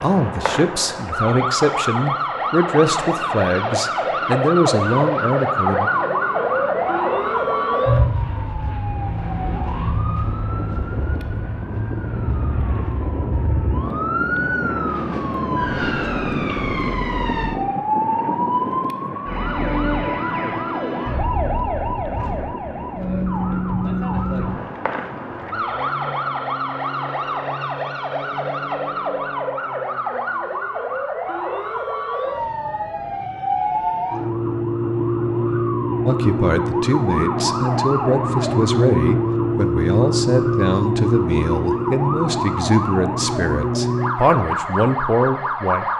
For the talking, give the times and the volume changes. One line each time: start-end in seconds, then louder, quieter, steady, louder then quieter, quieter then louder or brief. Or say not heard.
0.0-5.9 steady
36.0-45.9 steady.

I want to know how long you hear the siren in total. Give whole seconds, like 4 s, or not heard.
46 s.